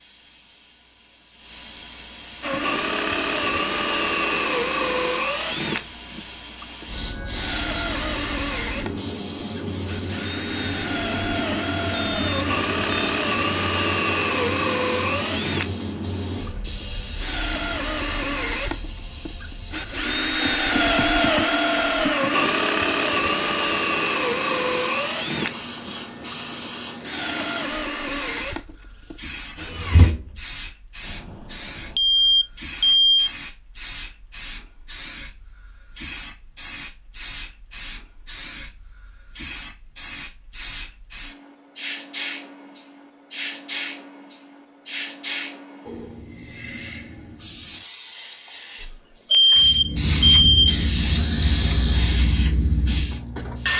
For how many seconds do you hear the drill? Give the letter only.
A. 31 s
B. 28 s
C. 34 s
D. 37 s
A.